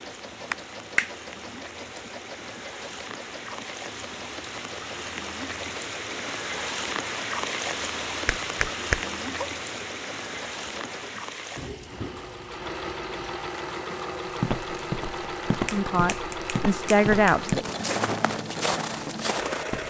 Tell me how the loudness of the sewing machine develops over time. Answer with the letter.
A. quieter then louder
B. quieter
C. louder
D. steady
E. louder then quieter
C.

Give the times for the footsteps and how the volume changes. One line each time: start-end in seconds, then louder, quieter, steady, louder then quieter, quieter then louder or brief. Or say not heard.
14.4-19.8 quieter then louder.